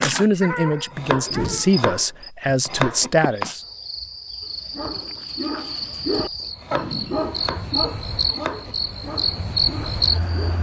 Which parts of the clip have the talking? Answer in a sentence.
The talking can be heard from 0.0 to 3.6 s.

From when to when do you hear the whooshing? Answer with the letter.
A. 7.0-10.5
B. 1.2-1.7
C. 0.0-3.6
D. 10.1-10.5
B.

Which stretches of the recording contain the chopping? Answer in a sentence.
You can hear the chopping from 0.9 to 3.1 s and from 6.5 to 8.8 s.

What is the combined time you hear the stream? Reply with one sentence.
You can't hear the stream here.